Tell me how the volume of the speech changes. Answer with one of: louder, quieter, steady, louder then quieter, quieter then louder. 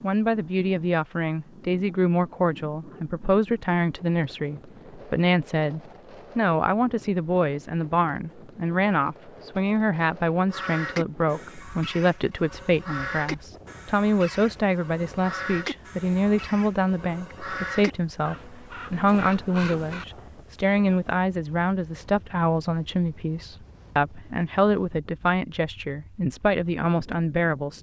steady.